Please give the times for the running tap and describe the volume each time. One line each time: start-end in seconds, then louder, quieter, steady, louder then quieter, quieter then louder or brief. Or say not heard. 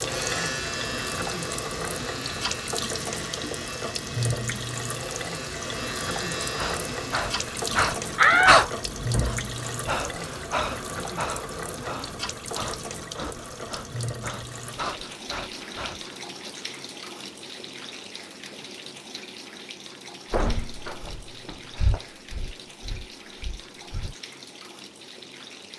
0.0-25.7 quieter.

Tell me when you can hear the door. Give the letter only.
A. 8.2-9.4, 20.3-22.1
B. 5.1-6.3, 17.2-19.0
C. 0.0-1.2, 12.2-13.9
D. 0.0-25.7
A.